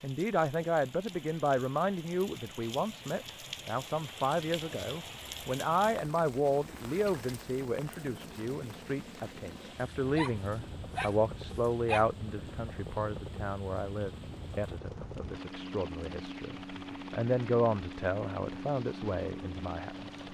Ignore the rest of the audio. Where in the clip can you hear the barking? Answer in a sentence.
You can hear the barking from 9.9 to 12.1 s.